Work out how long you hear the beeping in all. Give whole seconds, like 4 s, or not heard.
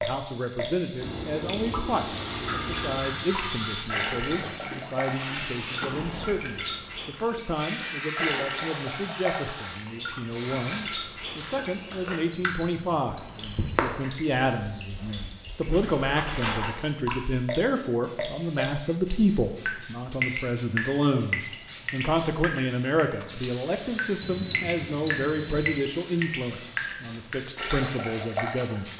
5 s.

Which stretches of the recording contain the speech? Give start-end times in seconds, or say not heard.
0.0-28.9.